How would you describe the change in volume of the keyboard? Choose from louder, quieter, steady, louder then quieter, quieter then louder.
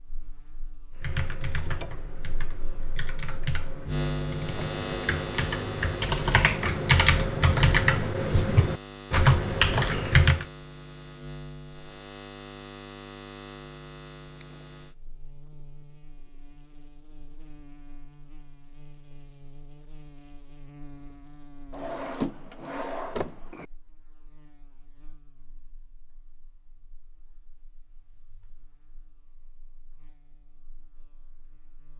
louder.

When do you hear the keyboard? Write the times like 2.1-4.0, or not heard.
1.0-10.4.